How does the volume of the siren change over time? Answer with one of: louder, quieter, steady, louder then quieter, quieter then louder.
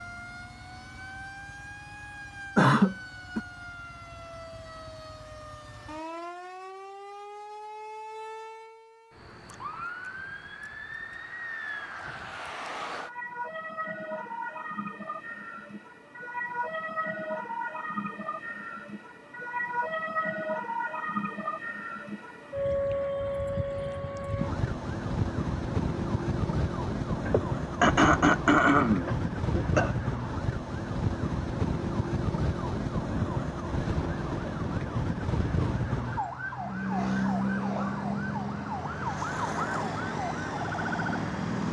louder.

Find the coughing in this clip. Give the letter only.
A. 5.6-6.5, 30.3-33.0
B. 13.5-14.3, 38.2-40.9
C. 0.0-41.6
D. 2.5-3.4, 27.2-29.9
D.